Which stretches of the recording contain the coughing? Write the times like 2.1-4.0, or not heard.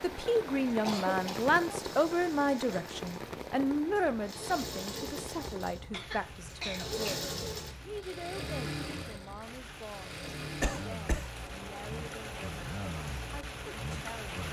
0.8-1.5, 5.9-7.3, 10.6-11.3.